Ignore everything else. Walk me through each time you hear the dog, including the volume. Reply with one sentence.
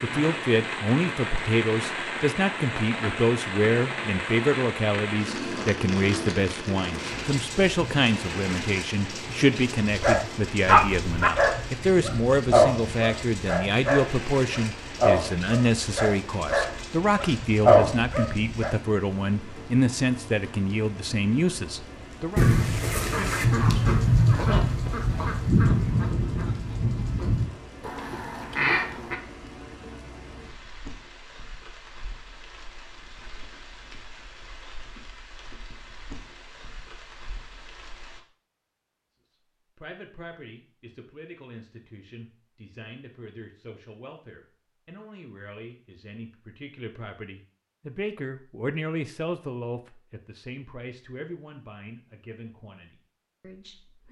You can hear the dog from 9.9 to 18.8 s, getting quieter then louder.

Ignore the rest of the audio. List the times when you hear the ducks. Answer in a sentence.
The ducks can be heard from 22.4 to 29.2 s.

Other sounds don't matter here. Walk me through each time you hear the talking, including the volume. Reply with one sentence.
The talking can be heard from 0.0 to 22.4 s, at a steady volume; and from 39.8 to 54.0 s, getting louder then quieter.